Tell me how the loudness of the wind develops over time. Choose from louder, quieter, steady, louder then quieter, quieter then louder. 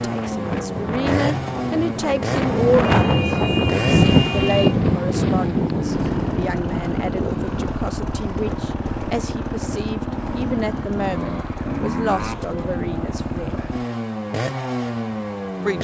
louder then quieter.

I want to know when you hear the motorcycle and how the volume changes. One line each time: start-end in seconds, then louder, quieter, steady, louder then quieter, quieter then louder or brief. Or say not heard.
0.0-15.7 steady.